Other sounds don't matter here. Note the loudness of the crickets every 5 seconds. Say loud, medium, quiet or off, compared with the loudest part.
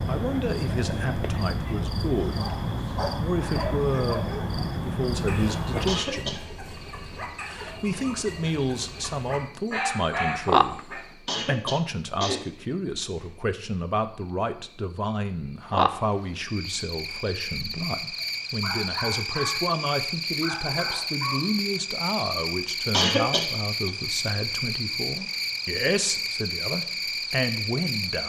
loud, medium, loud, loud, loud, loud.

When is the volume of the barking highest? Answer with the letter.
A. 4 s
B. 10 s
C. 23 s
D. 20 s
B.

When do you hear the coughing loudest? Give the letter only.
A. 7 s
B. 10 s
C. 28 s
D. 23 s
D.